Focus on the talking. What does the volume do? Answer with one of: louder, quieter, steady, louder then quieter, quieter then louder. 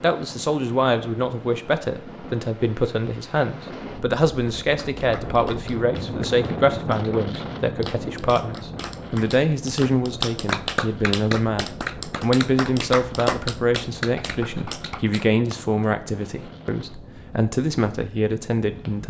steady.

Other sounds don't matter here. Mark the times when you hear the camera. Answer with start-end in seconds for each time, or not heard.
not heard.